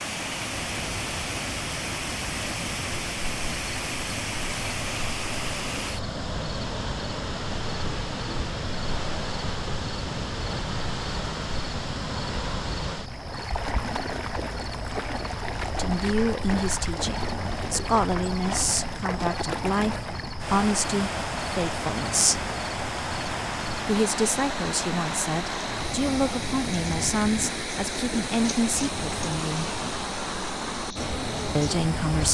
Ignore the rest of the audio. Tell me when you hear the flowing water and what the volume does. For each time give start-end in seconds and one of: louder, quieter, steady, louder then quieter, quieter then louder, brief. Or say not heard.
0.0-32.2 steady.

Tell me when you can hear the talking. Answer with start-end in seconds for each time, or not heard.
15.7-22.5, 23.9-29.8, 31.6-32.2.